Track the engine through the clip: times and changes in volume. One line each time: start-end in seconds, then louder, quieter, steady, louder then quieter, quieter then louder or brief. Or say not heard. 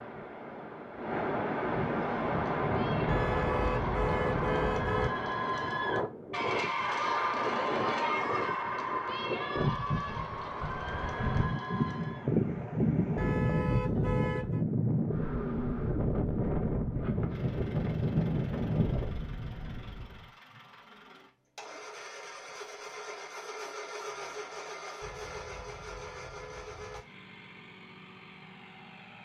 17.3-29.1 louder then quieter.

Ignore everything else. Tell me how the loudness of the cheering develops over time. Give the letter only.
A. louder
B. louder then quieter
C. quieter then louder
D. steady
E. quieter
B.